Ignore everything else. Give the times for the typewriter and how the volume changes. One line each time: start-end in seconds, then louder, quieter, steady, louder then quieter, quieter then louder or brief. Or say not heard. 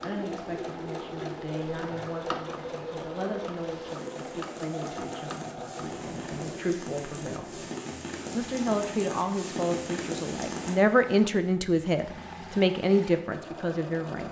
not heard.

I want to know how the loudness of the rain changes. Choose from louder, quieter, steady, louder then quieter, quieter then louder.
louder.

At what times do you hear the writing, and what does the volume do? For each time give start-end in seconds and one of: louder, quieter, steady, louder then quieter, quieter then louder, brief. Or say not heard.
not heard.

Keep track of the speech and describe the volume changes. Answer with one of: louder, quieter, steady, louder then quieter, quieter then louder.
louder.